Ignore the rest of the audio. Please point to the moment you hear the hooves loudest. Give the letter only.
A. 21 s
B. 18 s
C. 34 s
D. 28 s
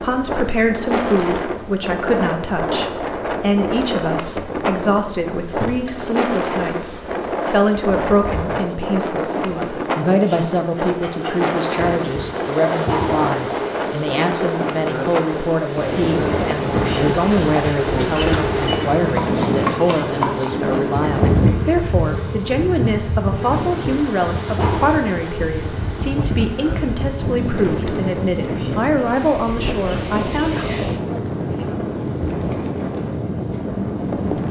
A.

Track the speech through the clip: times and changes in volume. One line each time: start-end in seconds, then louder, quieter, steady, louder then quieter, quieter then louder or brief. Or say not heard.
0.0-30.7 steady.